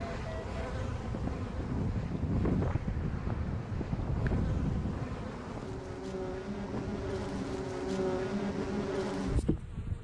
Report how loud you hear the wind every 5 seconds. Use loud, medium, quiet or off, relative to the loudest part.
loud, medium.